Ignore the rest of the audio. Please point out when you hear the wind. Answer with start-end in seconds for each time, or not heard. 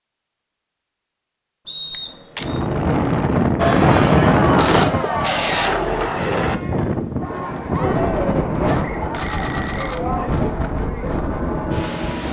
2.4-12.2.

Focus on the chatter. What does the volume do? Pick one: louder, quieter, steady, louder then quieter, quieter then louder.
quieter.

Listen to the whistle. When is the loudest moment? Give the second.
2 s.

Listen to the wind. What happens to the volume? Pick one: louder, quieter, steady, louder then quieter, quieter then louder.
quieter.